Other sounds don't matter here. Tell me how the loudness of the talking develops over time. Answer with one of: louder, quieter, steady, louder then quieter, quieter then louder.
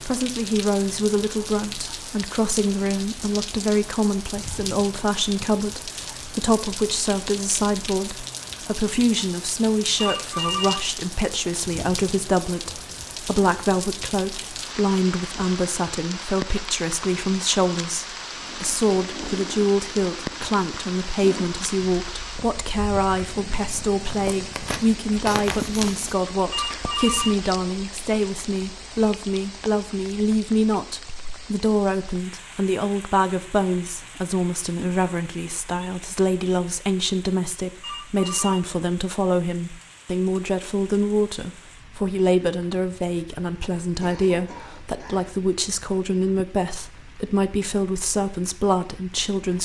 steady.